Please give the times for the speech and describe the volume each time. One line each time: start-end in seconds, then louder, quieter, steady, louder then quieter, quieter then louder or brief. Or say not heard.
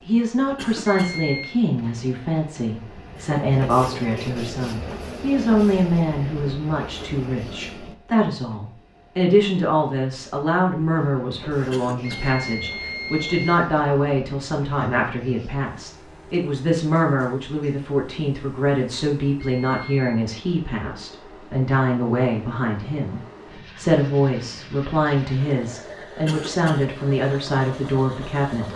0.1-28.7 steady.